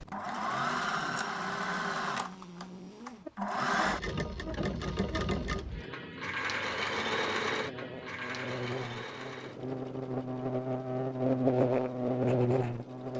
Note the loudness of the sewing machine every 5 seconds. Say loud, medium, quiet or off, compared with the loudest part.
loud, loud, quiet.